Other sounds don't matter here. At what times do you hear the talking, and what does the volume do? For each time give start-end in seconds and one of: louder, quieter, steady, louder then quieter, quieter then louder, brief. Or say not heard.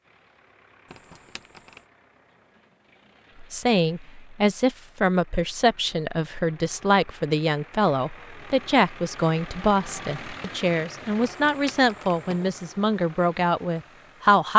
3.4-14.5 steady.